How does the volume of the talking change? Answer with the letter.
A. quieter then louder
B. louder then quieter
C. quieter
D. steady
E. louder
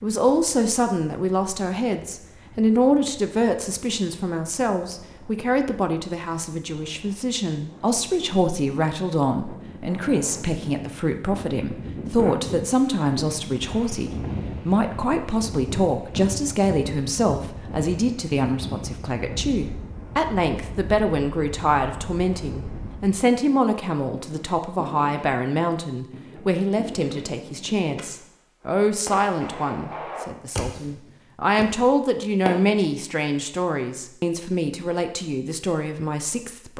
D.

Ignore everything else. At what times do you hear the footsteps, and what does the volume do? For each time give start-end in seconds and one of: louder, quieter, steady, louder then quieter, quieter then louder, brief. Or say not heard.
not heard.